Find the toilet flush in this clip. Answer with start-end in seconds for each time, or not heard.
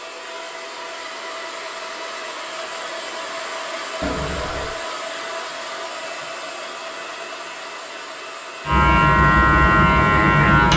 4.0-4.7.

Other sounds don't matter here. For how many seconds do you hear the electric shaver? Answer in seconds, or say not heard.
2 s.